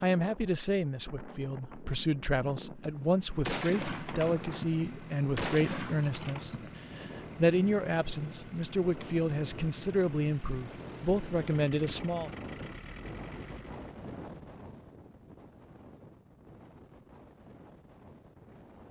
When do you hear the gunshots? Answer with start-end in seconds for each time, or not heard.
3.5-6.9.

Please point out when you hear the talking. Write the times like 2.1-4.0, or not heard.
0.0-12.3.